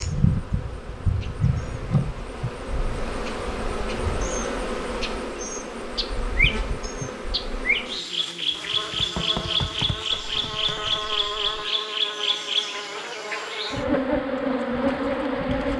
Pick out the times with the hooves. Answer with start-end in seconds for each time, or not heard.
8.5-11.7.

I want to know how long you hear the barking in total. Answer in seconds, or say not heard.
not heard.